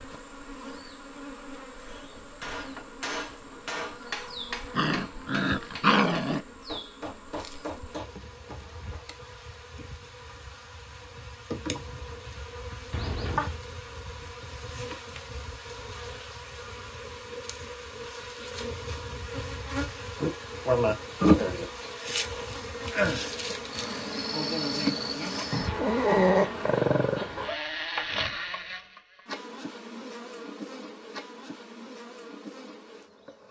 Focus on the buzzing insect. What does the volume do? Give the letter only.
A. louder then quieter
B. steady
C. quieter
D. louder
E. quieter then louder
A.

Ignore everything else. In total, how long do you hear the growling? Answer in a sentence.
The growling can be heard for 4 seconds in total.